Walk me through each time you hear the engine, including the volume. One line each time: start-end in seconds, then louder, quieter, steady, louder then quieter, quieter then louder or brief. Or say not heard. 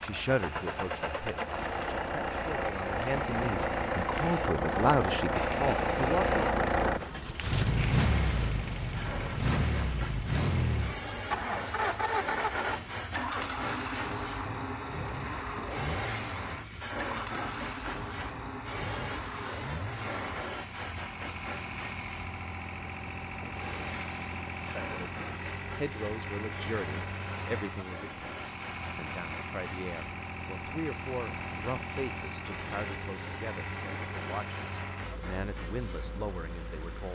0.0-37.1 quieter.